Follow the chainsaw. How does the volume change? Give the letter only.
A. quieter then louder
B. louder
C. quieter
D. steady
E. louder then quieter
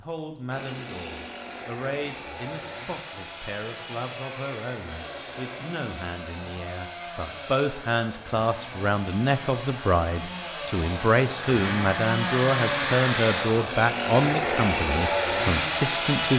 B.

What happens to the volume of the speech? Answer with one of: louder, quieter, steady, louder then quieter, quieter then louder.
louder.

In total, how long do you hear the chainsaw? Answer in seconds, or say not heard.
16 s.